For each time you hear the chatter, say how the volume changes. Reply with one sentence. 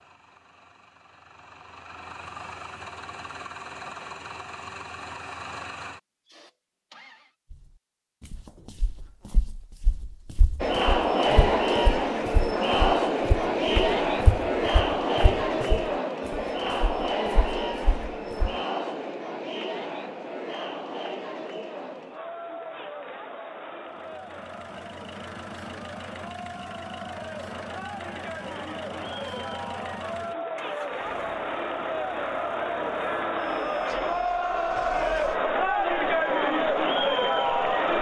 You can hear the chatter from 10.6 to 37.9 s, getting quieter then louder.